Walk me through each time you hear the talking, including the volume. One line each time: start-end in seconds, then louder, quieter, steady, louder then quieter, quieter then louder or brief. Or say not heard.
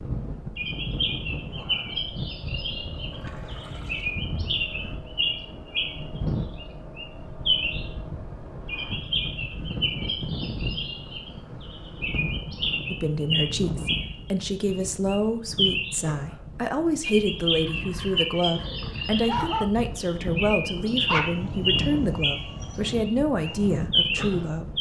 12.8-24.6 steady.